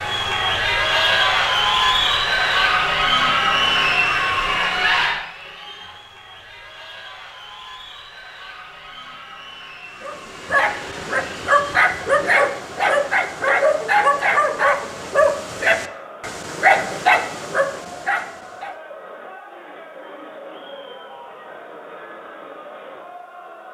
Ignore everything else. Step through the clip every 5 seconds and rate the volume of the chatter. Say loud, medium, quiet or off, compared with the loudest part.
loud, quiet, quiet, quiet, quiet.